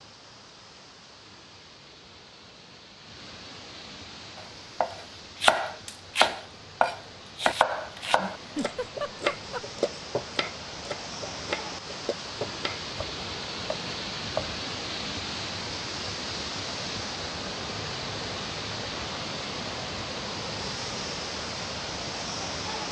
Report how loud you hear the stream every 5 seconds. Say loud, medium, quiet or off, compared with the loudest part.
quiet, medium, loud, loud, loud.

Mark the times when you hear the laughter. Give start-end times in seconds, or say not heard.
8.3-9.7.